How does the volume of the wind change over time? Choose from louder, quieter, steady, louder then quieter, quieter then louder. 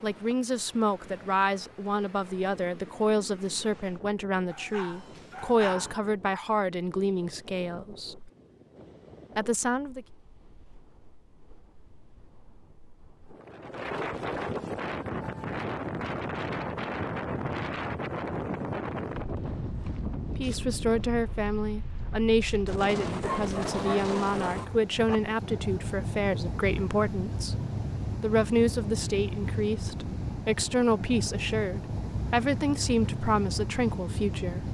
louder.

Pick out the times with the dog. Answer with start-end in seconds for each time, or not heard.
4.5-6.0, 23.2-25.2.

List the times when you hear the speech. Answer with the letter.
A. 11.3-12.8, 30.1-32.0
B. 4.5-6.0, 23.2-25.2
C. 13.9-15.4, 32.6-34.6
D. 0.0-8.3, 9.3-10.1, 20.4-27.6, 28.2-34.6
D.